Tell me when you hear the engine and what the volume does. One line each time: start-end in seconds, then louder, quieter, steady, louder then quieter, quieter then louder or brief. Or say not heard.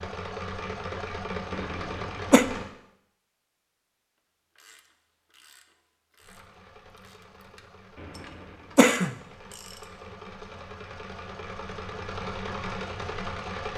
0.0-2.6 brief
6.2-13.7 louder.